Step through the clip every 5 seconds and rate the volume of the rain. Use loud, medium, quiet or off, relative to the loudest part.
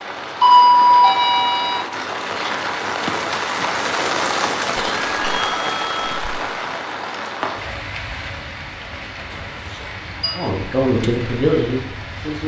loud, loud, medium.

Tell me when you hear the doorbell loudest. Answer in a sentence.
The loudest moment of the doorbell is at 1 second.